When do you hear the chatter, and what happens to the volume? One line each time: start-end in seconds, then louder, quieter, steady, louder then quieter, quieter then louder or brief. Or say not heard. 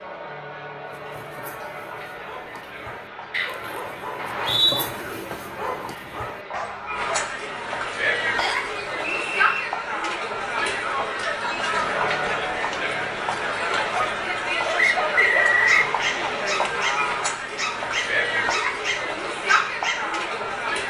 0.0-20.8 louder.